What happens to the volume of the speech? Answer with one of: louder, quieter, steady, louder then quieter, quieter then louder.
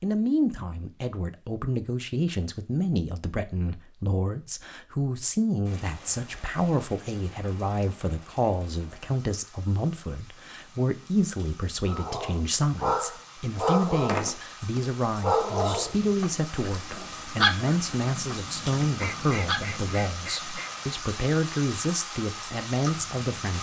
steady.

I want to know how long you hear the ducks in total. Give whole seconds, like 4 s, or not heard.
2 s.